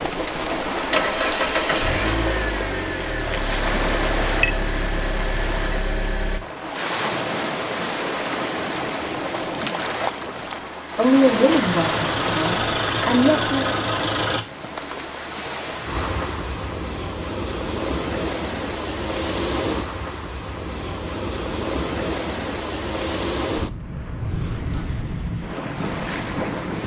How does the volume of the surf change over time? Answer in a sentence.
The volume of the surf stays about the same.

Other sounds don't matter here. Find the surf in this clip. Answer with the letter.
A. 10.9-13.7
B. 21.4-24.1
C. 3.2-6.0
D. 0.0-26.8
D.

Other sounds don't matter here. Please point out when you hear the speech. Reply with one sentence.
The speech can be heard from 10.9 to 13.7 s.